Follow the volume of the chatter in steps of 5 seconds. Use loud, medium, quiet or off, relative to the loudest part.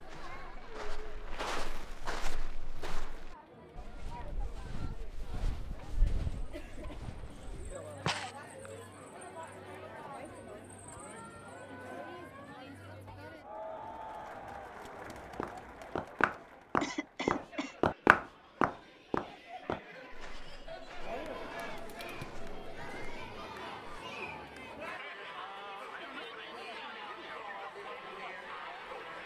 medium, medium, loud, medium, loud, loud.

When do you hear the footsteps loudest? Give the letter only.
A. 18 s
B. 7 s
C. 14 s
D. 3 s
A.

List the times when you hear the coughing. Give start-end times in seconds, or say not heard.
16.8-17.8.